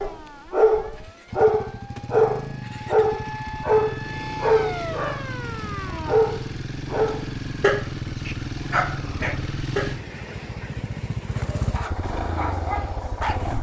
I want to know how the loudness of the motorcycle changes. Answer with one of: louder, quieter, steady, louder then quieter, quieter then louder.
louder.